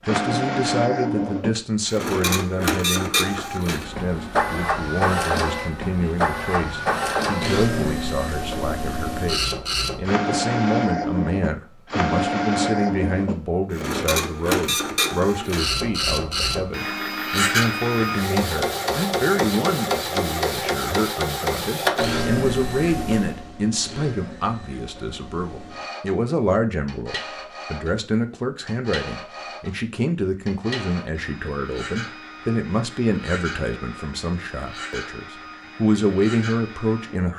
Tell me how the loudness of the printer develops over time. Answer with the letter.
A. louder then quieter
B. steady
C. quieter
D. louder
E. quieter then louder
C.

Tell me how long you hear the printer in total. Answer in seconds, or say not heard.
37 s.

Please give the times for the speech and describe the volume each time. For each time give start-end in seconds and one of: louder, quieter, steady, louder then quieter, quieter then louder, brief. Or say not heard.
0.1-37.3 steady.